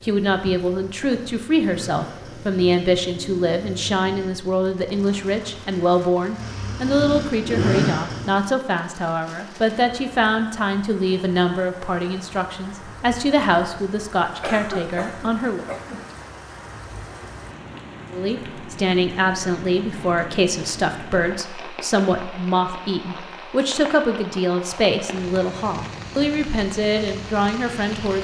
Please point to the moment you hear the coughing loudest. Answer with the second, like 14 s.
15 s.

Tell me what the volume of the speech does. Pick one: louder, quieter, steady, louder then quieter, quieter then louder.
steady.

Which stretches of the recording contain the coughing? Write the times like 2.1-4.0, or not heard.
14.4-16.1.